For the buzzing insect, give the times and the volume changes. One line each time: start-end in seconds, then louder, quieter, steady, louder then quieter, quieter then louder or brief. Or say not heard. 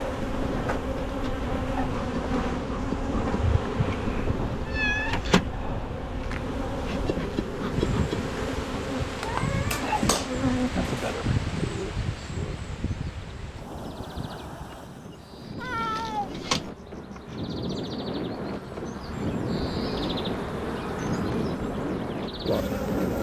0.0-23.1 quieter then louder.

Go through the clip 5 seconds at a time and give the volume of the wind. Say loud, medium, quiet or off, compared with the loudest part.
medium, loud, medium, loud, loud.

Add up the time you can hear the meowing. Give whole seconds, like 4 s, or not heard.
5 s.